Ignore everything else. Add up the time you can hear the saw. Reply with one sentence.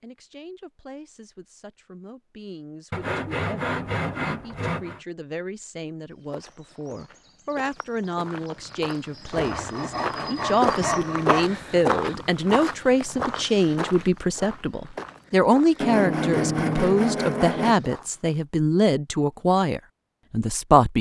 The saw can be heard for 6 seconds in total.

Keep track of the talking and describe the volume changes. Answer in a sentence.
The volume of the talking goes up.